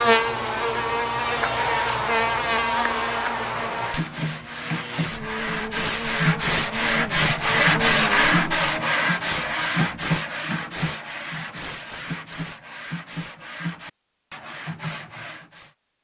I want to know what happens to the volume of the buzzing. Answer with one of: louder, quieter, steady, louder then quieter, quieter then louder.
quieter.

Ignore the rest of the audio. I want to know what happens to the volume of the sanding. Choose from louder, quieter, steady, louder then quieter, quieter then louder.
louder then quieter.